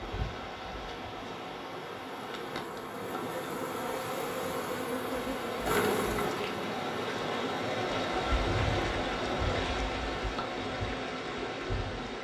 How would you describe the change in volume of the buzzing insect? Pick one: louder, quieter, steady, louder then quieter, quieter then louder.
louder then quieter.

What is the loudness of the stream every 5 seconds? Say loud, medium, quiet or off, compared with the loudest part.
medium, loud, loud.